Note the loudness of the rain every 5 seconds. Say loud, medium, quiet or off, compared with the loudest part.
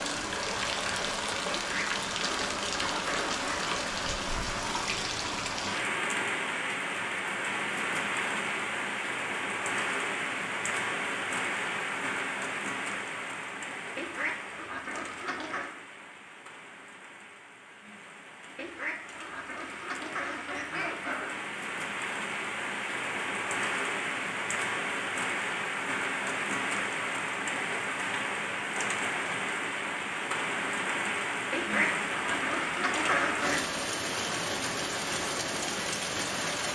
loud, loud, loud, quiet, loud, loud, loud, loud.